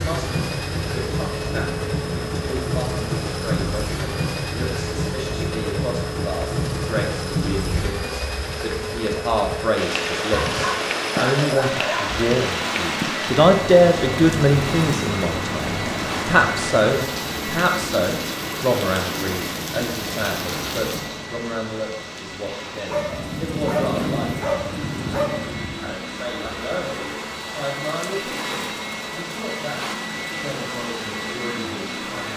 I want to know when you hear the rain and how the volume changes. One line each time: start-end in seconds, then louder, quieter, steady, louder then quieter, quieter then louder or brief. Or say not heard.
0.0-32.3 quieter.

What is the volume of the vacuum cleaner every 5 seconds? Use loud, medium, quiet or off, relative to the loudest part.
loud, loud, loud, loud, medium, loud, loud.